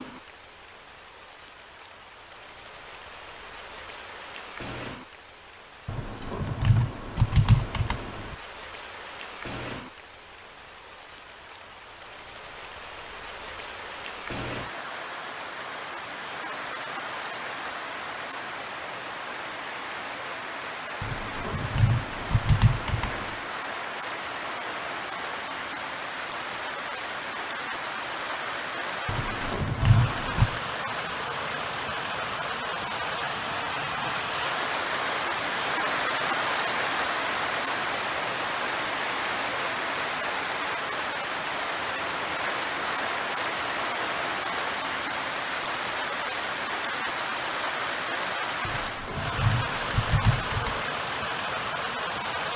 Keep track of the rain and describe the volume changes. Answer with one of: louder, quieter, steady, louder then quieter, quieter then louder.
louder.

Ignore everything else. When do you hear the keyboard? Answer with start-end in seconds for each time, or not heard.
5.8-8.3, 21.0-23.4, 29.1-30.6, 48.6-50.9.